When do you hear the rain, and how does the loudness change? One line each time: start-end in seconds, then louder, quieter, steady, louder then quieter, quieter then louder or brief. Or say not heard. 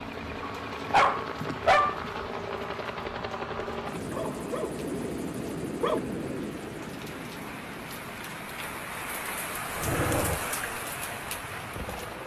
0.0-12.2 louder.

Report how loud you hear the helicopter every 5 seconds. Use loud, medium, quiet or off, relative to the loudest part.
loud, loud, medium.